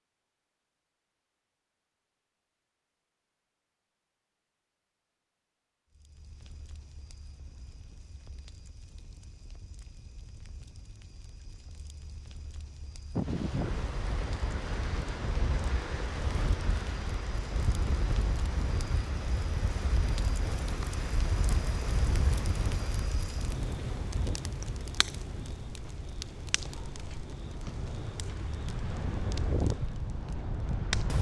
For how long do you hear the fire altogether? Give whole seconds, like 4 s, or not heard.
25 s.